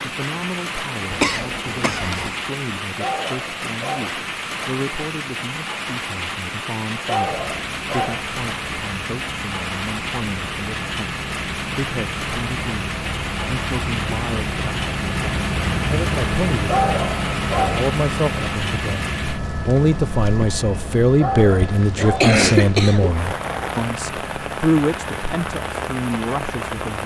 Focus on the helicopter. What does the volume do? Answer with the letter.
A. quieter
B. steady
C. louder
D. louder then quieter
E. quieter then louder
D.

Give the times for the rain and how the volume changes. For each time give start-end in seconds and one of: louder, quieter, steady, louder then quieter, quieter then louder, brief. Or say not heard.
0.0-27.0 steady.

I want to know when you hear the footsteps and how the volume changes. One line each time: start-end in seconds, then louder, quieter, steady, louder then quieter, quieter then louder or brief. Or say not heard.
not heard.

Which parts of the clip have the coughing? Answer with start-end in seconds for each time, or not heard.
1.1-2.4, 21.9-23.1.